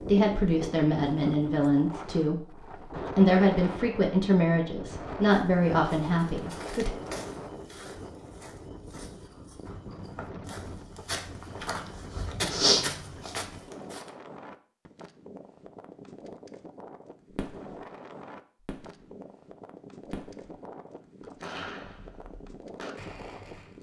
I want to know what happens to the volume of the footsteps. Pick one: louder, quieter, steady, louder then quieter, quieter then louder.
quieter then louder.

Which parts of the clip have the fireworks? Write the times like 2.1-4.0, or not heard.
17.3-17.8, 18.6-19.1, 20.0-23.7.